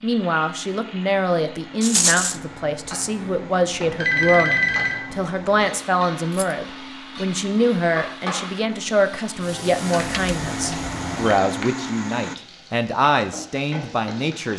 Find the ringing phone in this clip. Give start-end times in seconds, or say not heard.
3.8-5.0, 9.9-11.3.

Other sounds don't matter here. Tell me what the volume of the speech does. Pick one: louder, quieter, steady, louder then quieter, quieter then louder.
steady.